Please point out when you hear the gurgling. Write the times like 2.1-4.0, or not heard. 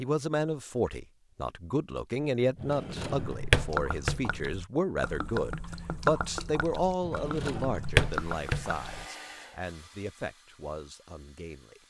3.6-9.1.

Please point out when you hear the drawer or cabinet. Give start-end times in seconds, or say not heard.
2.5-4.2, 7.0-8.7.